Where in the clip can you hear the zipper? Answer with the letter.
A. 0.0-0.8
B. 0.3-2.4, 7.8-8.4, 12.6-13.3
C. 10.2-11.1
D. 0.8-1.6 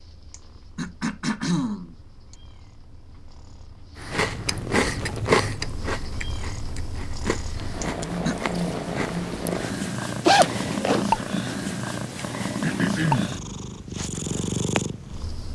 C.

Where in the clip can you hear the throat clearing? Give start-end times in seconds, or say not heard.
0.3-2.4, 7.8-8.4, 12.6-13.3.